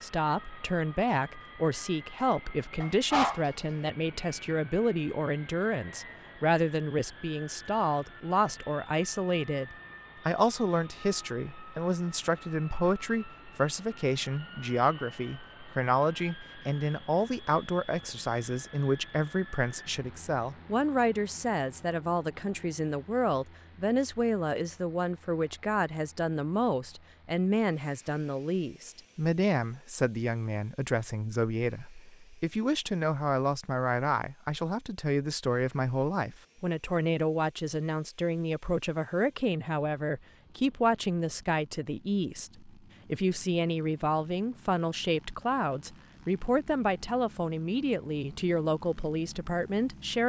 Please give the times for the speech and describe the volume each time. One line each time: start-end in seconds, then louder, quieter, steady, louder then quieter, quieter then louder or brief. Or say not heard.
0.0-50.2 steady.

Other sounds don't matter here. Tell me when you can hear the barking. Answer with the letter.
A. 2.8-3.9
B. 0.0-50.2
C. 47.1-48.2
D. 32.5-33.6
A.